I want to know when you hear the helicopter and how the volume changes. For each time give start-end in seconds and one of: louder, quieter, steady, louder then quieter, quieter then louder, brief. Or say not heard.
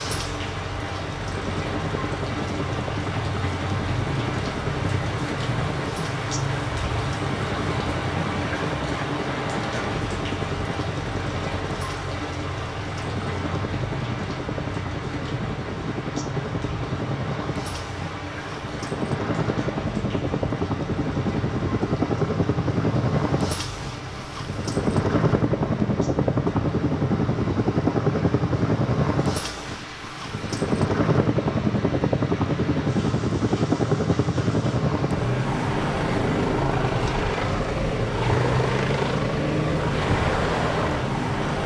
0.0-41.6 louder.